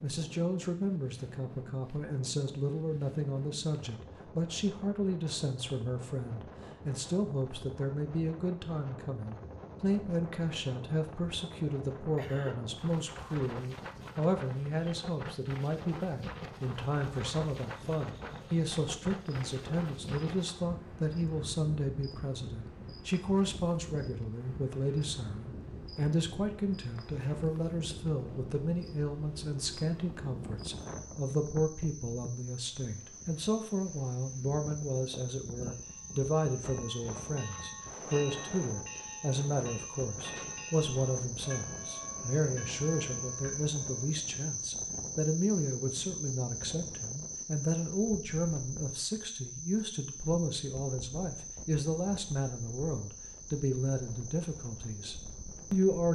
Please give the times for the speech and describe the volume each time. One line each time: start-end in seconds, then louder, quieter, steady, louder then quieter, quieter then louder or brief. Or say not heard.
0.0-56.1 steady.